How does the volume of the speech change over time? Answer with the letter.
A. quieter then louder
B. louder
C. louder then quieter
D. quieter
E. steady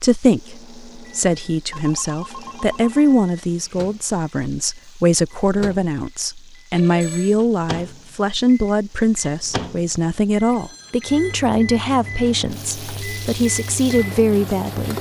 E.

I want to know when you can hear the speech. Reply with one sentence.
You can hear the speech from 0.0 to 14.9 s.